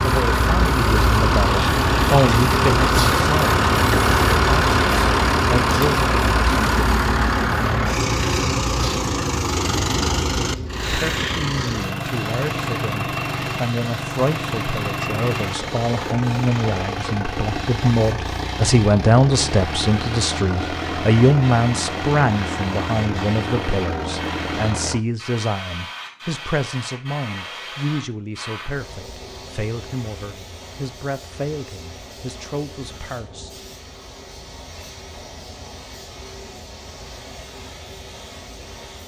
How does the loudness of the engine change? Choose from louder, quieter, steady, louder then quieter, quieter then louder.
quieter.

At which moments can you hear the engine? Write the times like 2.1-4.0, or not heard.
0.0-25.1.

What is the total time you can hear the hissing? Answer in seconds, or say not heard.
39 s.